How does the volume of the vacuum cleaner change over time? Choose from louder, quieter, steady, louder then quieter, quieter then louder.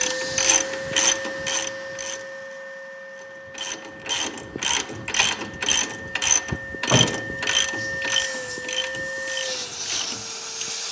quieter then louder.